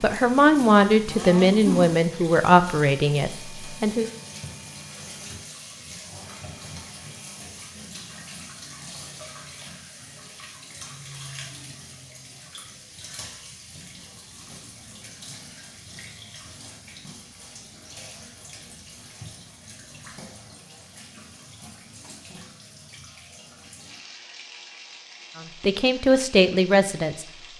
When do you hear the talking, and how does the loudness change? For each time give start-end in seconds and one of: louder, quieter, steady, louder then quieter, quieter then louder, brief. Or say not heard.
0.0-4.0 quieter
25.4-27.2 brief.